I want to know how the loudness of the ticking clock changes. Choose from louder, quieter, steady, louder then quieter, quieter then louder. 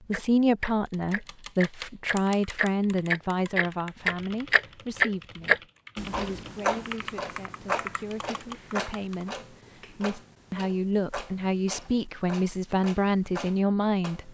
louder then quieter.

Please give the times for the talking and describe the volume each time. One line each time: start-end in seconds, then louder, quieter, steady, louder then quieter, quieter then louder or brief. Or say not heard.
0.1-14.2 quieter then louder.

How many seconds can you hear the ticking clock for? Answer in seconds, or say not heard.
14 s.